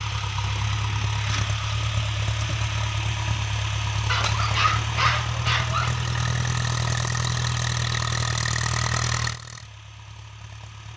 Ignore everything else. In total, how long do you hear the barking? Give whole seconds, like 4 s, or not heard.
2 s.